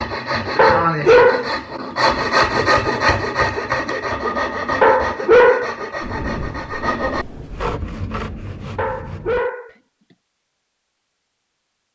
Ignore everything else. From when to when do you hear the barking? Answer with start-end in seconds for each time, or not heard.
0.6-1.5, 4.8-5.8, 8.8-9.7.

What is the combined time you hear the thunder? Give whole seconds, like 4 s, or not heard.
2 s.